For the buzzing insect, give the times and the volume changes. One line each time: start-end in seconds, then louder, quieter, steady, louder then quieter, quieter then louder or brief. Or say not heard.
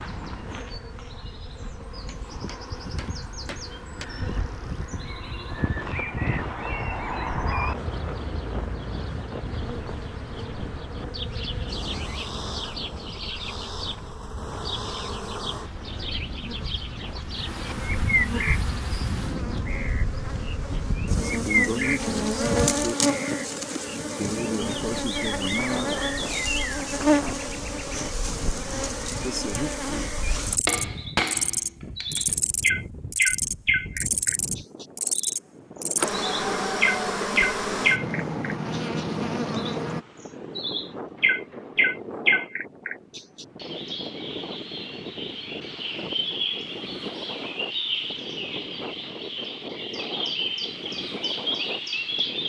0.2-40.0 louder.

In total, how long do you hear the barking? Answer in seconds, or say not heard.
not heard.